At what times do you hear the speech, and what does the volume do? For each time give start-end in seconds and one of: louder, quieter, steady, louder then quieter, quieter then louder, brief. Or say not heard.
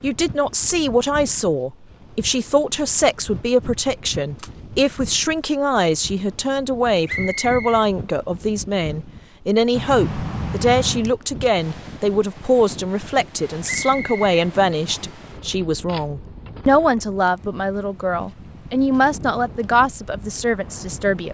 0.0-21.3 steady.